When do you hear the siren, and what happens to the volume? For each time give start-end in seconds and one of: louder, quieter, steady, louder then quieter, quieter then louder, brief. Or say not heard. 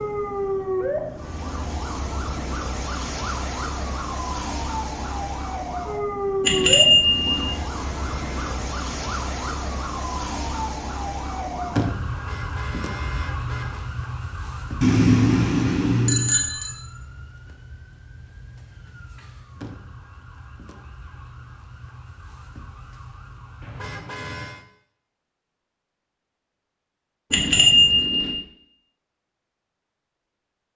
0.0-23.9 quieter.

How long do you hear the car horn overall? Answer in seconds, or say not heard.
4 s.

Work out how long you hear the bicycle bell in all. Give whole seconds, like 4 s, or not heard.
4 s.